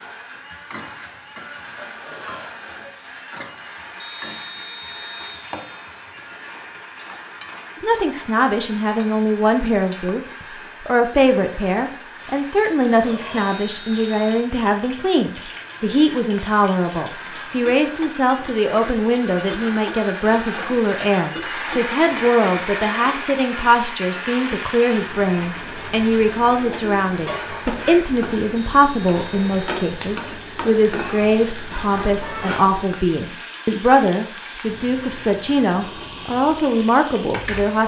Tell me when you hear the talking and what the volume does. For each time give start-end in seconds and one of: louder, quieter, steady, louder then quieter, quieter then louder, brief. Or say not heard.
7.8-37.8 steady.